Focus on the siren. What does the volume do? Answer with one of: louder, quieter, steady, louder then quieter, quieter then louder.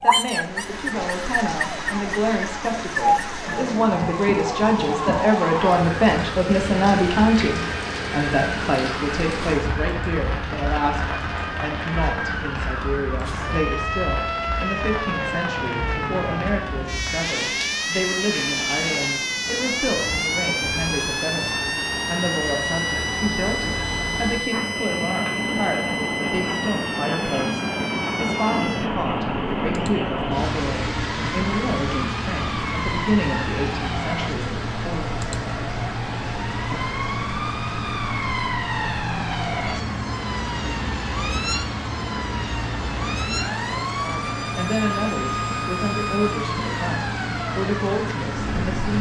steady.